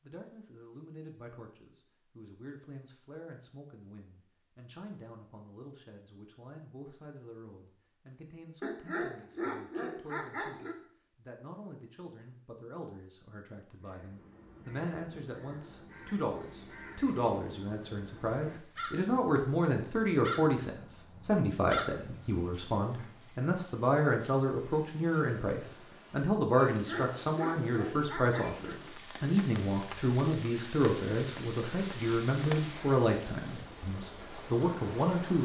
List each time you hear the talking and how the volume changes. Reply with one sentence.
The talking can be heard from 0.0 to 35.4 s, getting louder.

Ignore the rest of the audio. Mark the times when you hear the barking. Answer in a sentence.
You can hear the barking from 8.6 to 10.8 s and from 26.6 to 28.8 s.